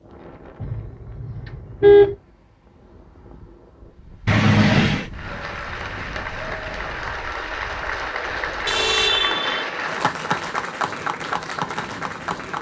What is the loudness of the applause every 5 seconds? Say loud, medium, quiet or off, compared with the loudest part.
off, loud, loud.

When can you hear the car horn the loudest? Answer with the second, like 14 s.
2 s.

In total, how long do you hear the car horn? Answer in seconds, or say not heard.
3 s.